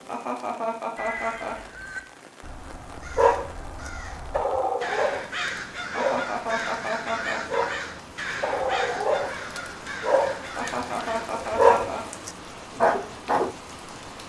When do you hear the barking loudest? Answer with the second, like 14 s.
12 s.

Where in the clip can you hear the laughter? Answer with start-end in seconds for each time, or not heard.
0.1-1.6, 5.9-7.4, 10.6-12.1.